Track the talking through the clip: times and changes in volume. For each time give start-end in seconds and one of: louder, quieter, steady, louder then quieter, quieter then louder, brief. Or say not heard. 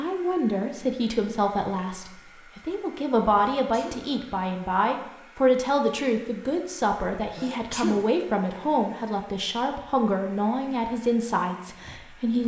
0.0-12.4 steady.